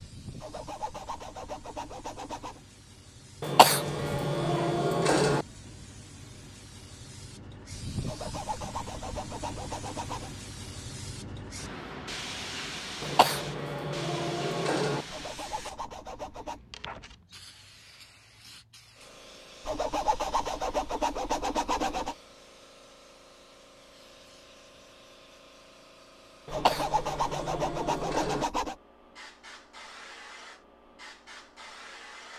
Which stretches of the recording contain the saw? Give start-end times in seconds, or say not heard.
0.3-2.6, 8.1-10.3, 15.1-16.6, 19.6-22.1, 26.5-28.8.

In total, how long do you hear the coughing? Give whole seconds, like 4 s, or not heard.
6 s.